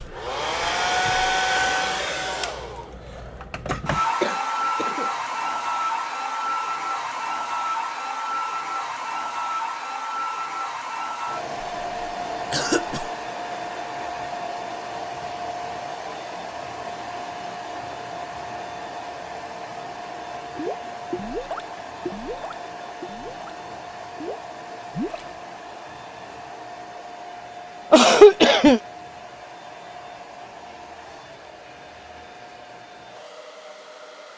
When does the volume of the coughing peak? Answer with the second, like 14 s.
28 s.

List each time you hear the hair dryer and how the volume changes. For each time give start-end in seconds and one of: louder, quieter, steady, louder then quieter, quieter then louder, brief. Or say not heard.
0.0-34.3 quieter.